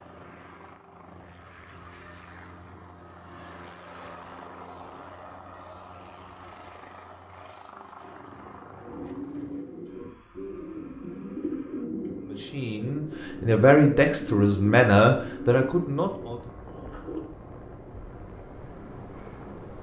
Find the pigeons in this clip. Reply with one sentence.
The pigeons can be heard from 8.8 to 17.2 s.